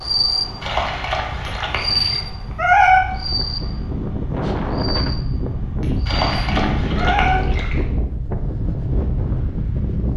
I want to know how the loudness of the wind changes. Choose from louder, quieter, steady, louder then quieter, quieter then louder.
louder.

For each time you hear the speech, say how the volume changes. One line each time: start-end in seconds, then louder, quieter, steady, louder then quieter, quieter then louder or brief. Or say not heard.
not heard.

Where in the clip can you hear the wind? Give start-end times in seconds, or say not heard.
0.0-10.1.